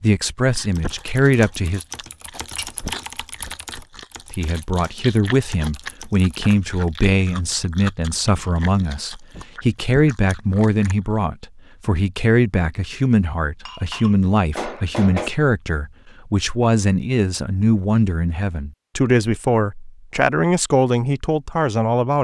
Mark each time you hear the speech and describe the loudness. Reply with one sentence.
The speech can be heard briefly from 0.0 to 1.9 s; and from 4.3 to 22.2 s, at a steady volume.